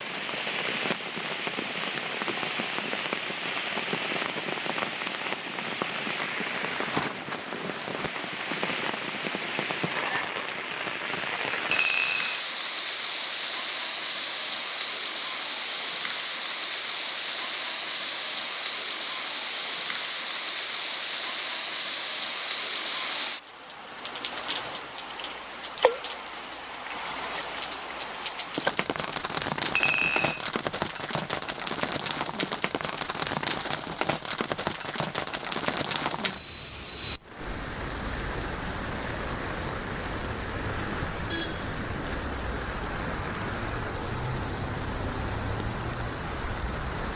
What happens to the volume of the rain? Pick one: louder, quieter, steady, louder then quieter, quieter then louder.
steady.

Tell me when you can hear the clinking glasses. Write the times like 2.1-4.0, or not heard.
11.7-12.5, 29.8-30.4.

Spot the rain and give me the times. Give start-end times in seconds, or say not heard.
0.0-47.1.